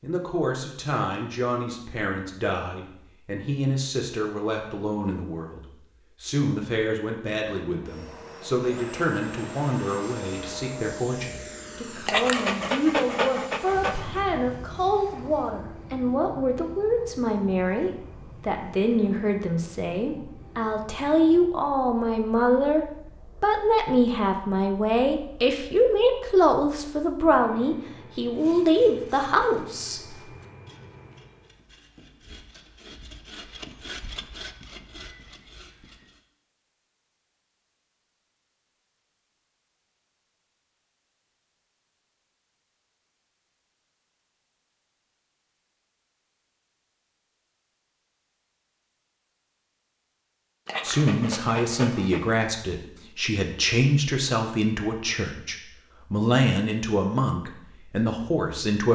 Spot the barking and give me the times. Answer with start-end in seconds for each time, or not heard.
12.1-14.2, 50.6-52.5.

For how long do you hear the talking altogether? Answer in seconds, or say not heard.
38 s.